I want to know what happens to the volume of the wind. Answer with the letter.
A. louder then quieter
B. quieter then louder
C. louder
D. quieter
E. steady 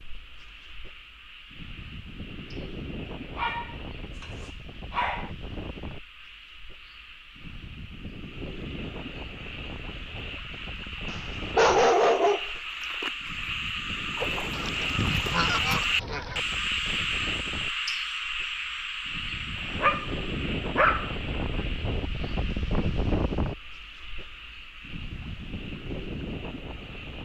C.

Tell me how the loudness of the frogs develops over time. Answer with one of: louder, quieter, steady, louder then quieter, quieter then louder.
louder then quieter.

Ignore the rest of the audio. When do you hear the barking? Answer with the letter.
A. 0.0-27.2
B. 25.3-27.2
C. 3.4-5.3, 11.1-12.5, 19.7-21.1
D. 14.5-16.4
C.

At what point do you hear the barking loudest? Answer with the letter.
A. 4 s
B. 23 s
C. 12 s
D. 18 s
C.